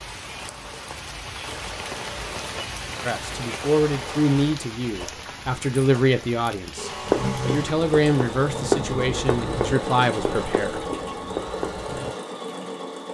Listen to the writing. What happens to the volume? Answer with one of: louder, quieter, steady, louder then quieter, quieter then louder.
louder then quieter.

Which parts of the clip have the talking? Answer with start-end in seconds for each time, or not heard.
3.0-10.8.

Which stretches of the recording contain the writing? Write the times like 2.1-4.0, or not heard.
7.0-12.1.